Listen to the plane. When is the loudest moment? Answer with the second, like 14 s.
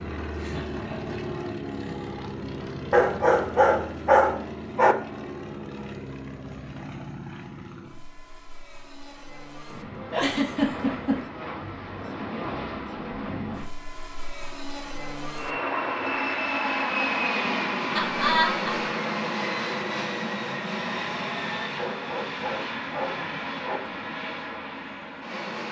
17 s.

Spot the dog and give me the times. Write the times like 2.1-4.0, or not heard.
2.9-5.0, 21.8-23.8.